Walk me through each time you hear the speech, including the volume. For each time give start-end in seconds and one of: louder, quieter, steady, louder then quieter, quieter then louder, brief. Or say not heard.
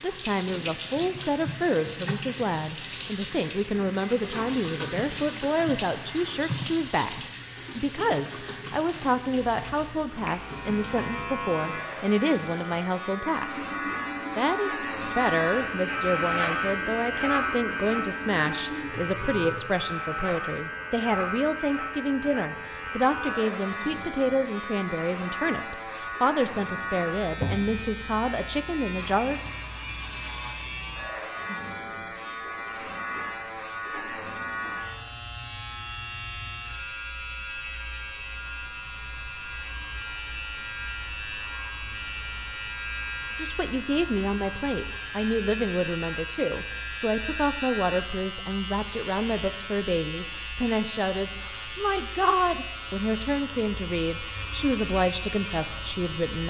0.0-29.4 steady
43.4-56.4 steady.